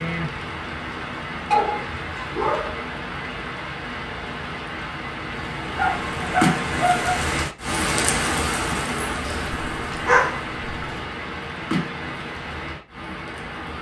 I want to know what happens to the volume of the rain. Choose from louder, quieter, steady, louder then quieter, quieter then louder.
louder then quieter.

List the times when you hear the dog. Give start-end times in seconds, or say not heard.
1.5-2.8, 5.8-7.2, 9.2-11.0.